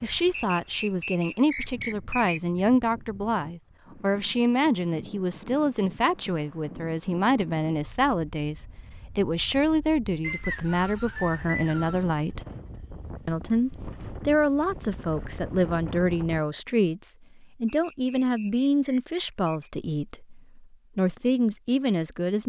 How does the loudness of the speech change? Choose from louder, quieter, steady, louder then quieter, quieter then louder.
steady.